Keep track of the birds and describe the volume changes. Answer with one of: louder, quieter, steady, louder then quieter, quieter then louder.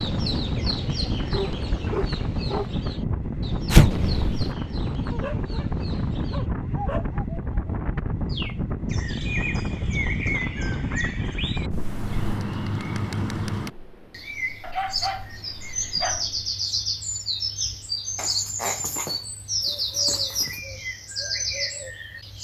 louder.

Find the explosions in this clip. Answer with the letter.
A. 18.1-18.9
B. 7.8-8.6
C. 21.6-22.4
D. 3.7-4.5
D.